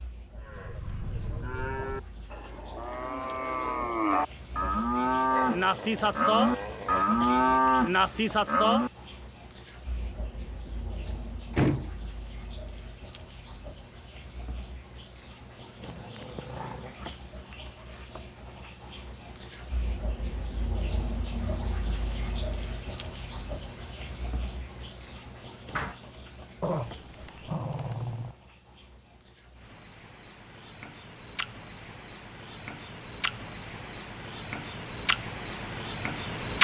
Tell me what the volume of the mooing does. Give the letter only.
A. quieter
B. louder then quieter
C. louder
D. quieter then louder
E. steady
C.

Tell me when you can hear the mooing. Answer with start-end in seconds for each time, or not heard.
0.3-8.9.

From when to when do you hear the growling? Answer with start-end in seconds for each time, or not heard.
5.3-7.1, 15.8-17.2, 26.6-28.4.